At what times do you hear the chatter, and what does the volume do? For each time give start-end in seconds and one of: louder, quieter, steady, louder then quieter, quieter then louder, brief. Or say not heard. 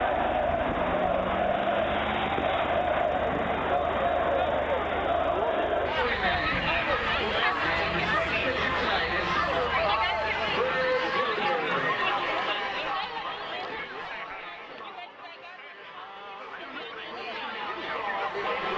0.0-18.7 quieter.